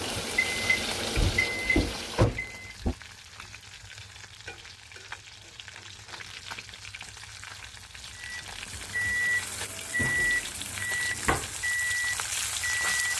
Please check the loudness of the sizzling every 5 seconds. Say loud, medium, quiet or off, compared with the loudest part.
loud, medium, loud.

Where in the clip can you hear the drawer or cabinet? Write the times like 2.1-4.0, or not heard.
1.1-3.0, 9.9-11.5.